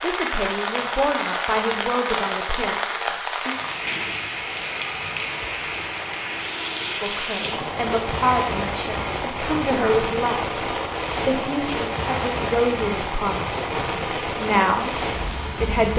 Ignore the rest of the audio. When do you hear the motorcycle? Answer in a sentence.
The motorcycle can't be heard in this clip.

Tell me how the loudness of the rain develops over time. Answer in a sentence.
The volume of the rain stays about the same.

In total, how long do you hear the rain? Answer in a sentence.
The rain can be heard for 16 seconds in total.